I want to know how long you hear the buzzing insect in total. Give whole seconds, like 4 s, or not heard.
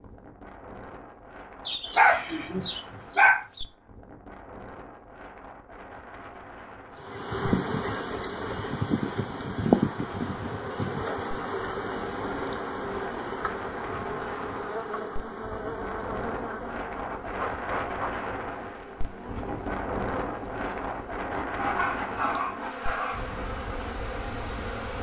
18 s.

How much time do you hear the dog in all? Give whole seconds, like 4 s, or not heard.
4 s.